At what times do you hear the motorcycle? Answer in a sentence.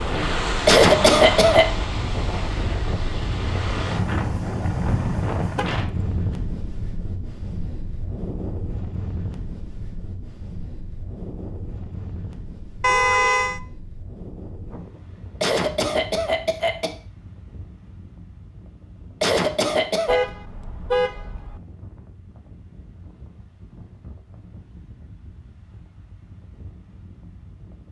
The motorcycle can't be heard in this clip.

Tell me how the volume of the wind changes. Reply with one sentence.
The volume of the wind goes down.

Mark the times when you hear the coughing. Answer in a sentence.
You can hear the coughing from 0.7 to 1.6 s, from 15.4 to 16.9 s and from 19.2 to 20.2 s.